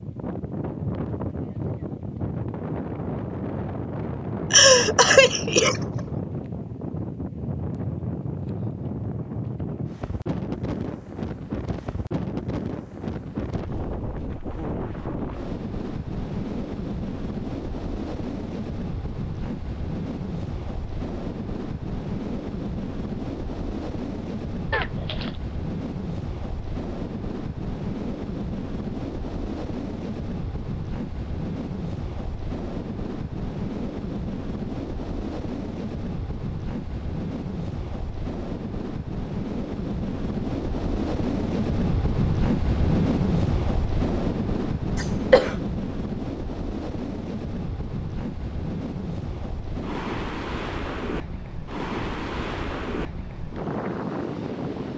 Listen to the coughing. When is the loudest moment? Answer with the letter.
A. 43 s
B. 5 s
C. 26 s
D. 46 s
B.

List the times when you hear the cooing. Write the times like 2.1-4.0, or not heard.
not heard.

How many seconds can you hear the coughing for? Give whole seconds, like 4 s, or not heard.
3 s.